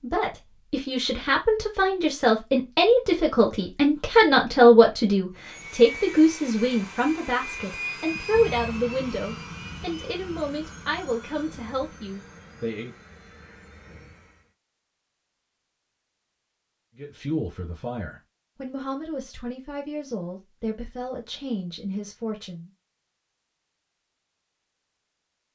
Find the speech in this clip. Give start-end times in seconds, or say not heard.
0.0-12.9, 16.9-22.7.